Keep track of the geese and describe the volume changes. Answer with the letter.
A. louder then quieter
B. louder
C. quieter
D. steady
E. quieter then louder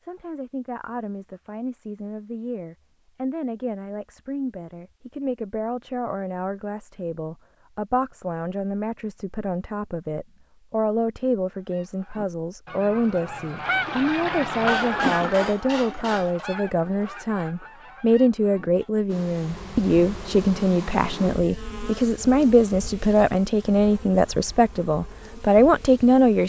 A.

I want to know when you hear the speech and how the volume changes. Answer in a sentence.
You can hear the speech from 0.0 to 26.4 s, getting louder.